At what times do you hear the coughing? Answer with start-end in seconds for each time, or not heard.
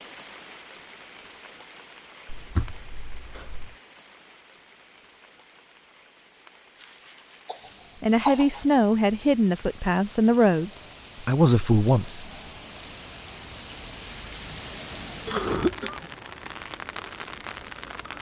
2.2-3.8, 7.5-8.7, 15.2-16.1.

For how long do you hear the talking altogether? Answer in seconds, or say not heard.
4 s.